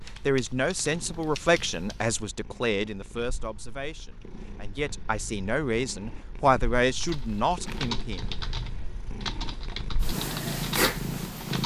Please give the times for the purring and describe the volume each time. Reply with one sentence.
The purring can be heard from 0.0 to 11.6 s, getting louder.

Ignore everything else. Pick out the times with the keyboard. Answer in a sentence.
You can hear the keyboard from 0.0 to 2.2 s and from 7.0 to 11.6 s.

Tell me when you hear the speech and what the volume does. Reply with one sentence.
The speech can be heard from 0.2 to 8.2 s, getting quieter then louder.